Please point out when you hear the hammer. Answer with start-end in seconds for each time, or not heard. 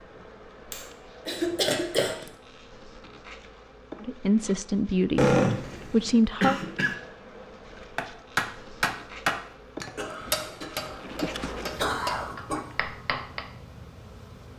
8.0-13.4.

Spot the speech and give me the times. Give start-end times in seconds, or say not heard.
4.0-6.6.